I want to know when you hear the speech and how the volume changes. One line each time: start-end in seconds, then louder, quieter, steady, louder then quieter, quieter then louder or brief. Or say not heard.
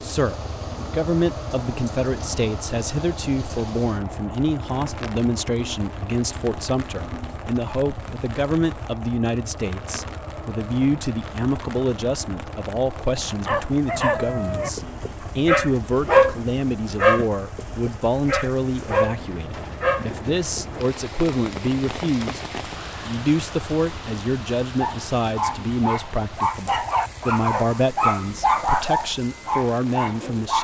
0.0-30.5 steady.